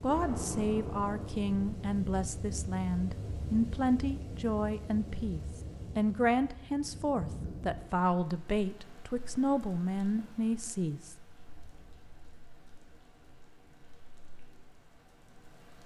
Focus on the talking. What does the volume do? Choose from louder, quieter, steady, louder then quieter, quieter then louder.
steady.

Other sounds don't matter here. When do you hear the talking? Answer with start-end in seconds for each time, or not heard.
0.0-11.2.